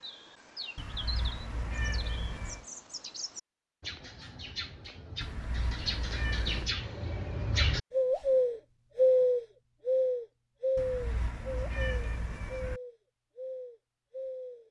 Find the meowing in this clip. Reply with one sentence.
The meowing can be heard from 0.8 to 2.6 s, from 5.2 to 6.7 s and from 10.8 to 12.8 s.